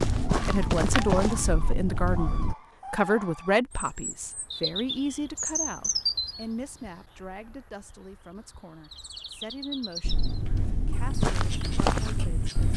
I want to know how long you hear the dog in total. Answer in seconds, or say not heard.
not heard.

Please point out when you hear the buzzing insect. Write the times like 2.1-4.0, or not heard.
not heard.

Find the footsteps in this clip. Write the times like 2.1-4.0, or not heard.
0.0-2.5, 10.0-12.7.